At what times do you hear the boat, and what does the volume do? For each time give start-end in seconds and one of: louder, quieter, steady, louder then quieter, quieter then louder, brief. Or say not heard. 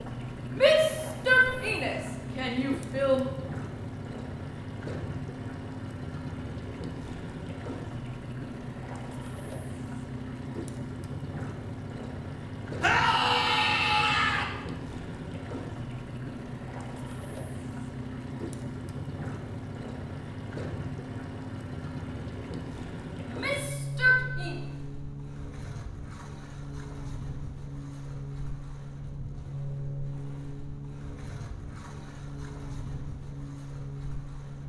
0.0-34.6 steady.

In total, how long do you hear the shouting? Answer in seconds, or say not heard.
6 s.